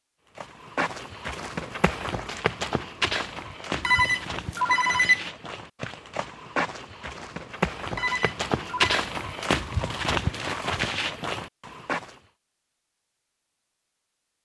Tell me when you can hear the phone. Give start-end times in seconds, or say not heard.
3.8-5.3, 8.0-8.9.